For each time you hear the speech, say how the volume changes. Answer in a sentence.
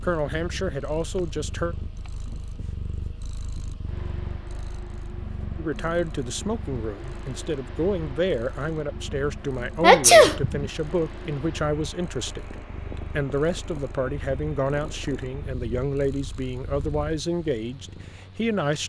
The speech can be heard briefly from 0.0 to 1.8 s; and from 5.5 to 18.8 s, at a steady volume.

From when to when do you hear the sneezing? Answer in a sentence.
The sneezing can be heard from 9.8 to 10.7 s.